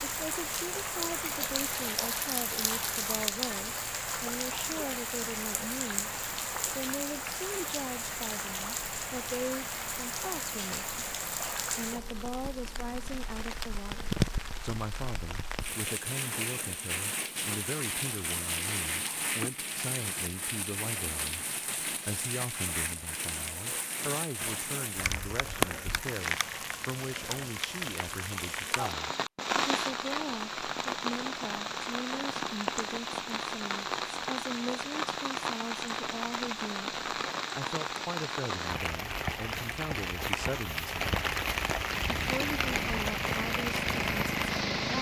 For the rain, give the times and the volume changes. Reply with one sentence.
The rain can be heard from 0.0 to 44.9 s, at a steady volume.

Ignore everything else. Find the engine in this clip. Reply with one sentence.
You can hear the engine from 41.9 to 44.9 s.